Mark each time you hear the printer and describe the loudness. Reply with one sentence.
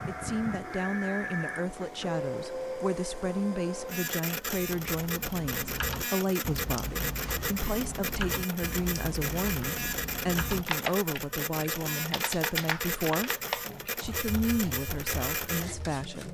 You can hear the printer from 0.0 to 16.2 s, at a steady volume.